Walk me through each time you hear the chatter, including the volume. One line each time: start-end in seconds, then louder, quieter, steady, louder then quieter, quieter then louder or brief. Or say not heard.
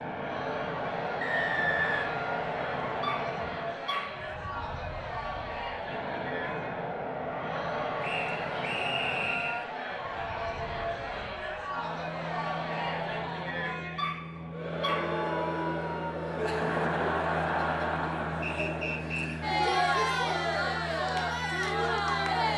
0.1-22.5 louder.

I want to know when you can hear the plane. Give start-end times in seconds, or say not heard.
0.0-22.5.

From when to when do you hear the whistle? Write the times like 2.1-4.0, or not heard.
1.2-2.9, 8.0-9.7, 18.4-19.4.